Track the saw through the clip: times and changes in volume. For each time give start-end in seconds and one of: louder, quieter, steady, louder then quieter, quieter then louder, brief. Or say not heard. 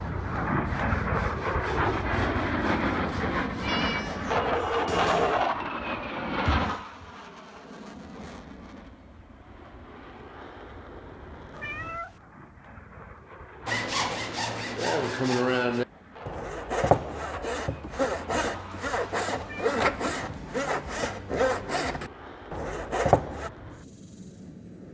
0.0-4.3 steady
13.7-23.5 steady.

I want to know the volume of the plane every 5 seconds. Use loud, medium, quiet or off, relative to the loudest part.
loud, loud, quiet, quiet, quiet.